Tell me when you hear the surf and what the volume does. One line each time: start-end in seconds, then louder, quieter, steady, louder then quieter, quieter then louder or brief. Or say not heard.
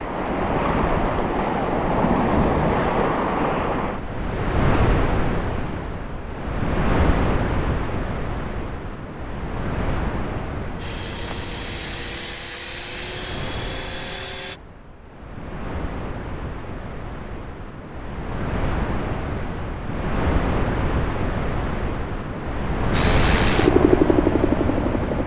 0.0-25.2 quieter then louder.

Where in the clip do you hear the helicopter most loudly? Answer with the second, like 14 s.
24 s.